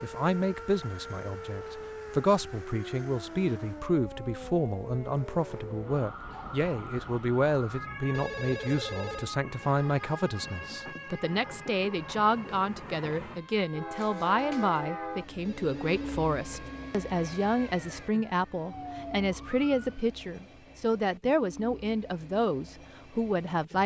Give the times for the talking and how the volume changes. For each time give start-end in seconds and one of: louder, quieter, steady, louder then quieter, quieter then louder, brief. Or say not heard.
0.0-23.8 steady.